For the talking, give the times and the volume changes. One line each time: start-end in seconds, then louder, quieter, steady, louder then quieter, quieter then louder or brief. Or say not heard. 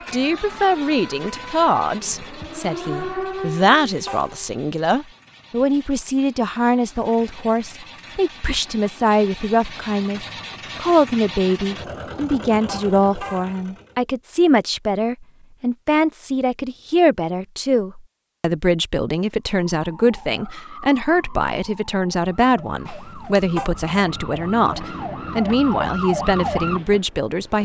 0.1-27.6 steady.